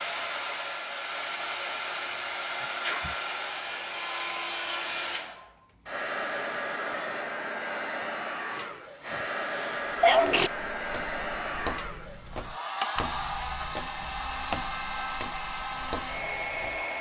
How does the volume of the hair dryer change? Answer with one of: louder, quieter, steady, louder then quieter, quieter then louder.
steady.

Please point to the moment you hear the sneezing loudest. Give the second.
10 s.